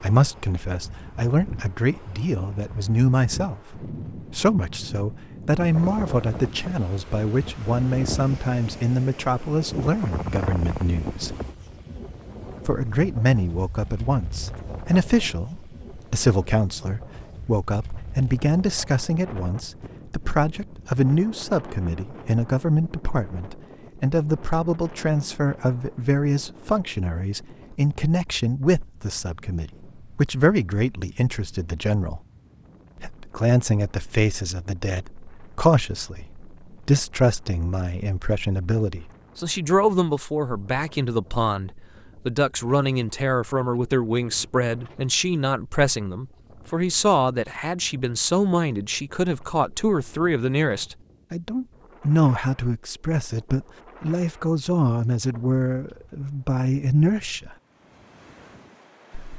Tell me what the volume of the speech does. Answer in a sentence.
The volume of the speech stays about the same.